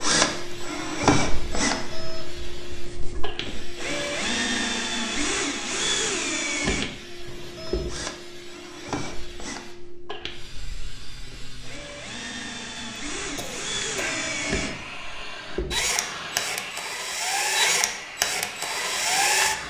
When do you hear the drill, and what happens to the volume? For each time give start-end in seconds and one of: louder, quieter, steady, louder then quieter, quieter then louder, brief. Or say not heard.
0.0-19.6 quieter then louder.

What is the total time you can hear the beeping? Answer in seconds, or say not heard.
3 s.